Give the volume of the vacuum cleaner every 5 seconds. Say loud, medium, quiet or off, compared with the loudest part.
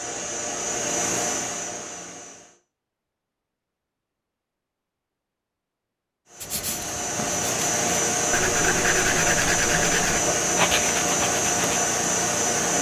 medium, loud, loud.